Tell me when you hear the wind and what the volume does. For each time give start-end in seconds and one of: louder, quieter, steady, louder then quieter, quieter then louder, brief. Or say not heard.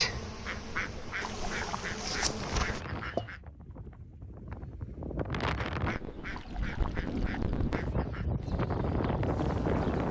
0.0-10.0 louder.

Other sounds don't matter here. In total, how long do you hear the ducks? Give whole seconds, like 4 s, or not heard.
6 s.